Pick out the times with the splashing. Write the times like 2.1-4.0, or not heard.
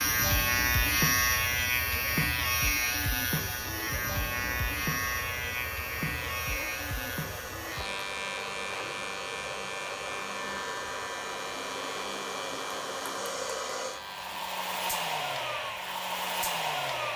not heard.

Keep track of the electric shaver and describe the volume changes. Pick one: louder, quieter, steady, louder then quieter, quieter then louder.
quieter.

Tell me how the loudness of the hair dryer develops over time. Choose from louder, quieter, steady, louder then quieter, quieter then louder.
louder.